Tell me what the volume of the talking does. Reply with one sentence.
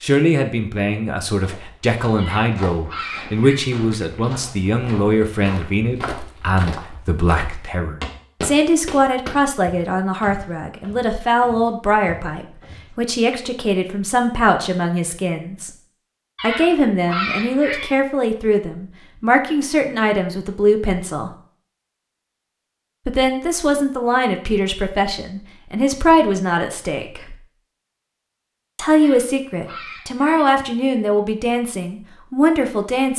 The volume of the talking stays about the same.